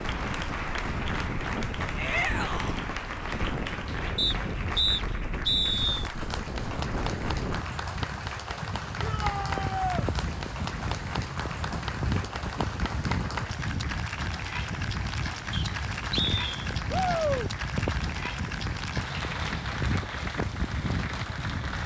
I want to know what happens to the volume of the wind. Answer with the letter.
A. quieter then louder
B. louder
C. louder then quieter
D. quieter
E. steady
E.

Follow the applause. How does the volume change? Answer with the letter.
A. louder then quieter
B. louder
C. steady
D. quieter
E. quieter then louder
C.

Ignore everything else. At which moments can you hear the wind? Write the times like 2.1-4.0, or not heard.
0.0-21.8.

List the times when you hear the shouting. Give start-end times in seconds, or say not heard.
1.9-2.8, 9.0-10.1, 16.9-17.5.